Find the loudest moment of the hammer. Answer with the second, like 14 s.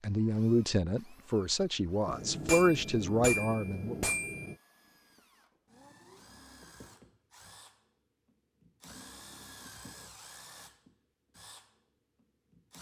3 s.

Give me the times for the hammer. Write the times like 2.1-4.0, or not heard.
2.0-4.5.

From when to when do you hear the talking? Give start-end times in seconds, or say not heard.
0.0-4.0.